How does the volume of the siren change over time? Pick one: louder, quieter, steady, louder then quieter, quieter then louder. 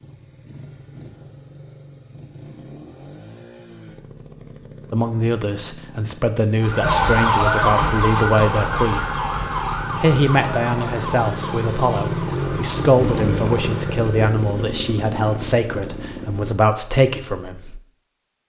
quieter.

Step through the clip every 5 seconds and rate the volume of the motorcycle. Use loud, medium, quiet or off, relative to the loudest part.
quiet, medium, loud, medium.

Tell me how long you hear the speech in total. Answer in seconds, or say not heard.
12 s.